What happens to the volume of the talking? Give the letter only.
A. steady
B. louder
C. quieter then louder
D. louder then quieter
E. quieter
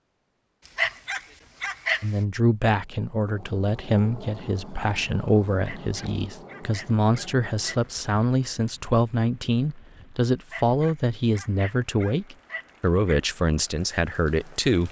A.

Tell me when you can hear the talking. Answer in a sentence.
The talking can be heard from 2.0 to 14.8 s.